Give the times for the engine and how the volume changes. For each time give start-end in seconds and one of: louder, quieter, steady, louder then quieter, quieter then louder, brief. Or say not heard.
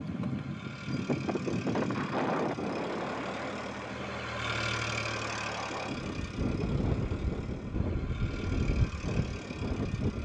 0.0-10.1 louder then quieter.